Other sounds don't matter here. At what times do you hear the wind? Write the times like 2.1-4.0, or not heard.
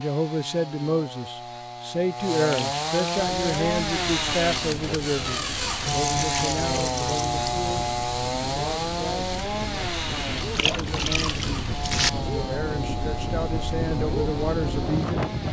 3.1-15.4.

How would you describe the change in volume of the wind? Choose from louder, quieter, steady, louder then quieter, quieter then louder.
louder.